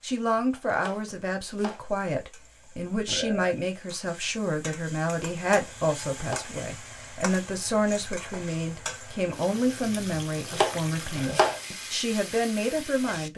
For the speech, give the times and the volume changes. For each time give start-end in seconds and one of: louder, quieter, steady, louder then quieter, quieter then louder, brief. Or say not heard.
0.0-13.3 steady.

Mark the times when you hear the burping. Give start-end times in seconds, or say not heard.
3.0-3.5, 11.1-11.6.